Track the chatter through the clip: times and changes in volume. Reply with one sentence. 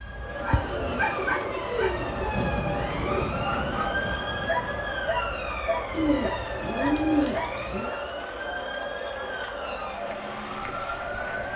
You can hear the chatter from 0.0 to 11.5 s, at a steady volume.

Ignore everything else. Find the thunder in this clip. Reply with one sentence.
The thunder can be heard from 2.4 to 5.0 s.